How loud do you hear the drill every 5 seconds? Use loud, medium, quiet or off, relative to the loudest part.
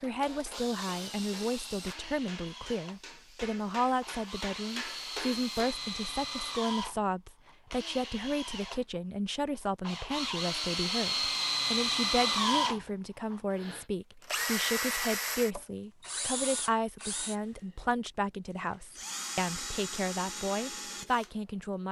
quiet, medium, loud, medium, medium.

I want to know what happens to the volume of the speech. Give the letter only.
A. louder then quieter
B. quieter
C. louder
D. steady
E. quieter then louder
D.